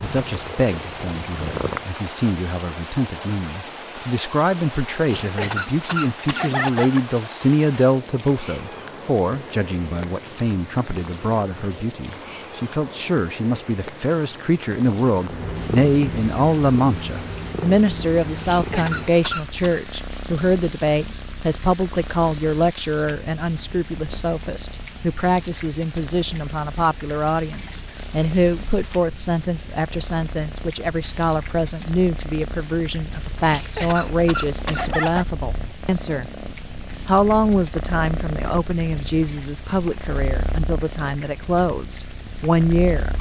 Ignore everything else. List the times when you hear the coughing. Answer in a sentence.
The coughing can be heard from 5.0 to 7.0 s, from 18.4 to 19.8 s and from 33.5 to 35.2 s.